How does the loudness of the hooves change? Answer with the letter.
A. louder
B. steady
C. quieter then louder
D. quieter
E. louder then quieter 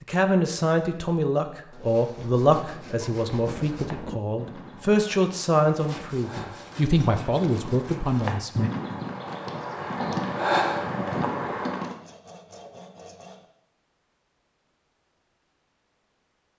A.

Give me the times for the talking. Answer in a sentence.
The talking can be heard from 0.0 to 8.7 s.